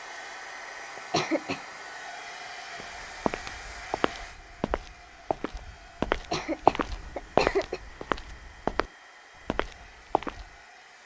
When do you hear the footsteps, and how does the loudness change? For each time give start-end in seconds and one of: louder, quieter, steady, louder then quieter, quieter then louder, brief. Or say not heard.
2.8-10.5 louder then quieter.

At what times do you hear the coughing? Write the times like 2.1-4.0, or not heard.
0.9-1.6, 6.1-7.8.